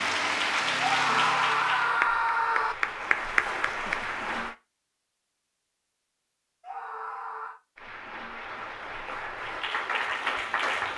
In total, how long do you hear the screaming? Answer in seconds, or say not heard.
3 s.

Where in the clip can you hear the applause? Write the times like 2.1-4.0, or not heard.
0.0-4.5, 7.8-10.9.